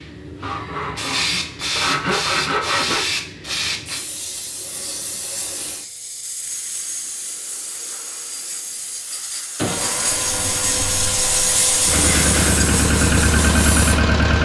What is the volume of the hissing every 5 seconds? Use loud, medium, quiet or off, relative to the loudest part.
loud, medium, loud.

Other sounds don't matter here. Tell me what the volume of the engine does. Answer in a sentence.
The volume of the engine goes down, then up.